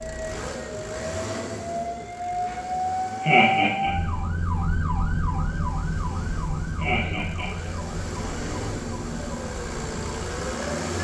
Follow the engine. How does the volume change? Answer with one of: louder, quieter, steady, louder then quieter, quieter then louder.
quieter then louder.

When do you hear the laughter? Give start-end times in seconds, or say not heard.
3.2-3.9, 6.8-7.7.